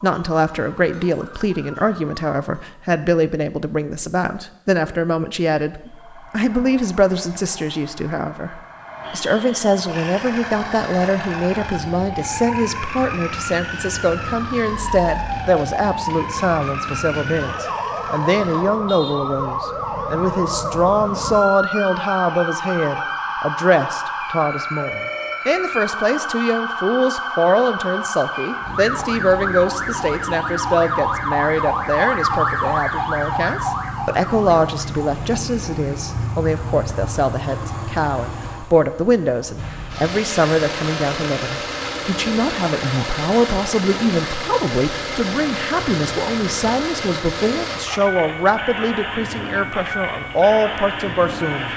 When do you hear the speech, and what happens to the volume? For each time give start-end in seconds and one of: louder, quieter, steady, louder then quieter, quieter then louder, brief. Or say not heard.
0.0-51.7 steady.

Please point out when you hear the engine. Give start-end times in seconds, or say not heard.
9.8-18.6, 39.5-51.7.